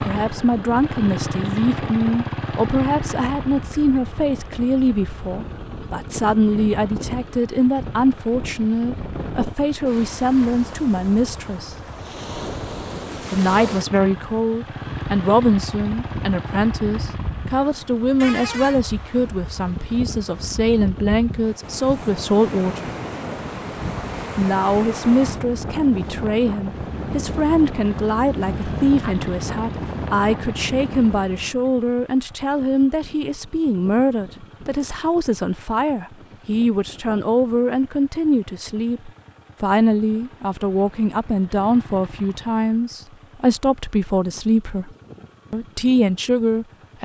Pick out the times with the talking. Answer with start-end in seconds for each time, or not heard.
0.0-11.7, 13.3-22.9, 24.4-44.9, 45.5-47.0.